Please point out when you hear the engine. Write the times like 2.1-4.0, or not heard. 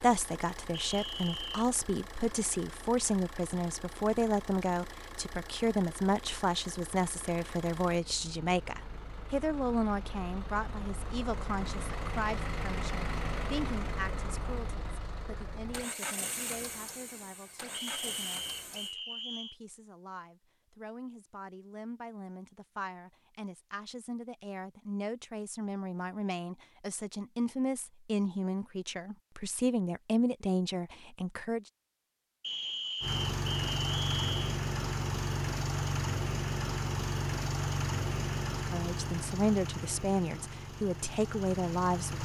0.0-18.9, 33.0-42.2.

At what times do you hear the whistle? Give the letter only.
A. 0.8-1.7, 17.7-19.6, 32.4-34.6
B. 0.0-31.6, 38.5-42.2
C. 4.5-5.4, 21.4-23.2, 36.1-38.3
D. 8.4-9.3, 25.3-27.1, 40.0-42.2
A.